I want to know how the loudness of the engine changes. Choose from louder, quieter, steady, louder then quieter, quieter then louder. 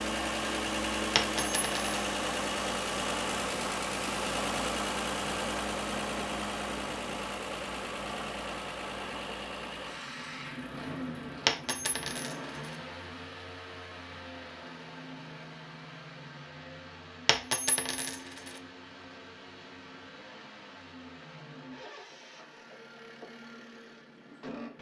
quieter.